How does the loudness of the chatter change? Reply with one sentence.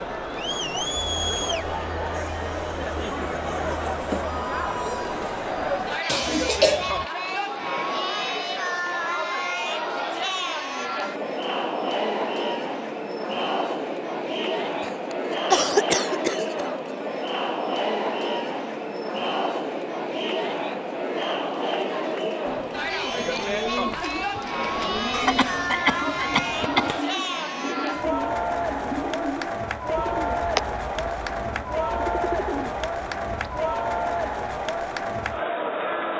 The volume of the chatter stays about the same.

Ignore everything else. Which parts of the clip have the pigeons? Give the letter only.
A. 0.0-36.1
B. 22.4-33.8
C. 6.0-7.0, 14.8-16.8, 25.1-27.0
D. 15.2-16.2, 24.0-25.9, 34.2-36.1
B.